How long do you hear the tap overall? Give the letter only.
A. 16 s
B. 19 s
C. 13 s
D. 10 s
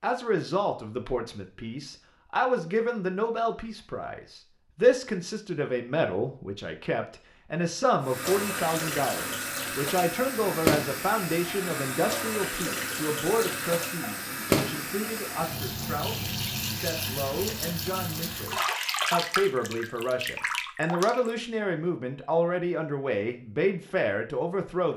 C.